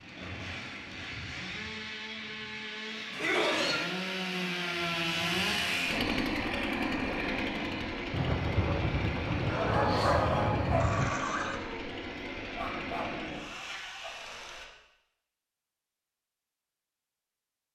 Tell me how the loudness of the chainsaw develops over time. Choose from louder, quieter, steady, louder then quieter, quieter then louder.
louder then quieter.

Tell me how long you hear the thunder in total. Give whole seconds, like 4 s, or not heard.
3 s.